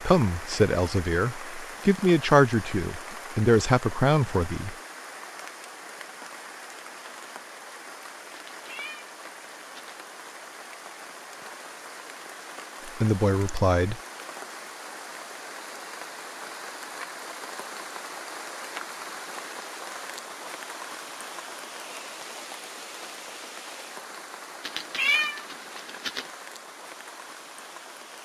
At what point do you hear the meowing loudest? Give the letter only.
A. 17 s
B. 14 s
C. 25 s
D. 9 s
C.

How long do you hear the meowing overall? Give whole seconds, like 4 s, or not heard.
3 s.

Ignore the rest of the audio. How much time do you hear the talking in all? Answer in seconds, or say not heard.
6 s.